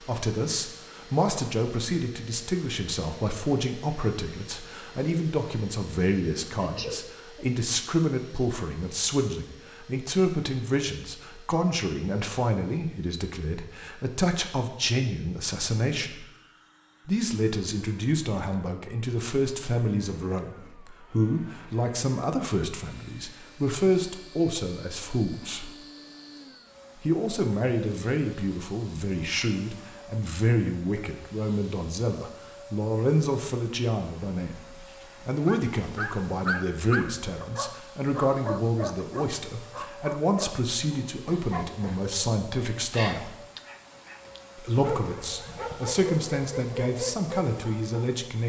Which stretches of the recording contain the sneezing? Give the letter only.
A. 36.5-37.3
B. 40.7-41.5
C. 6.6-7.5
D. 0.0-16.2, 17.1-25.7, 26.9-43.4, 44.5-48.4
C.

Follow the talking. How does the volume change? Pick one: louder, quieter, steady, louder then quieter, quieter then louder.
steady.